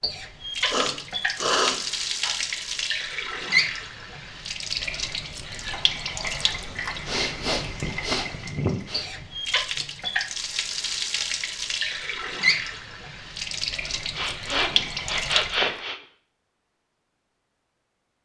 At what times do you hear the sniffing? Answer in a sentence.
You can hear the sniffing from 0.7 to 2.4 s, from 7.0 to 9.2 s and from 14.2 to 16.0 s.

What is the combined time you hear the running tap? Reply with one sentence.
You can hear the running tap for 16 seconds altogether.